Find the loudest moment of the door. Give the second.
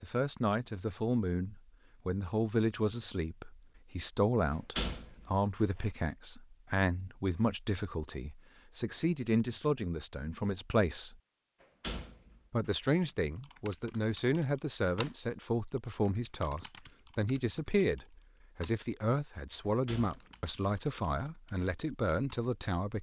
5 s.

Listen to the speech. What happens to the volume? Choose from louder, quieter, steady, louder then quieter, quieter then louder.
steady.